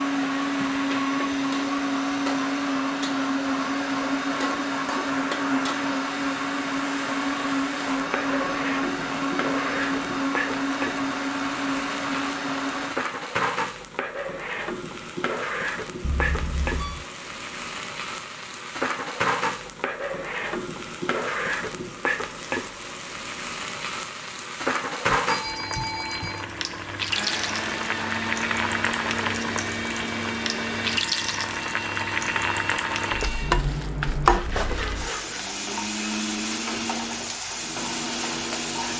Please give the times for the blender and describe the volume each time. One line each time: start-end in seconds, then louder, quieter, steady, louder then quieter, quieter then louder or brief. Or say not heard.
0.0-12.9 steady
27.1-38.9 steady.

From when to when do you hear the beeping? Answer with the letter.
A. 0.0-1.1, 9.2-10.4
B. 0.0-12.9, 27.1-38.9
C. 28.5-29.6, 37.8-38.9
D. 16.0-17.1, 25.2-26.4
D.